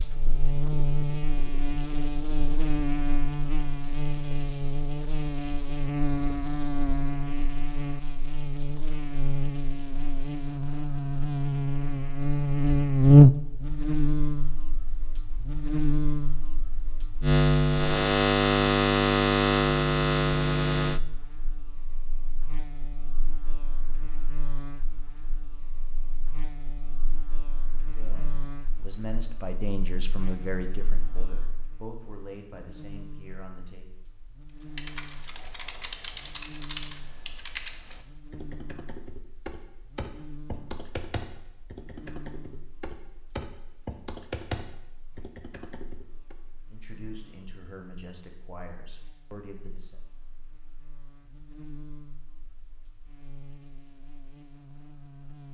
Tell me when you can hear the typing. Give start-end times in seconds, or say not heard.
34.8-46.4.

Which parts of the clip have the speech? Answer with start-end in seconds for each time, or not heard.
27.9-33.9, 46.7-50.0.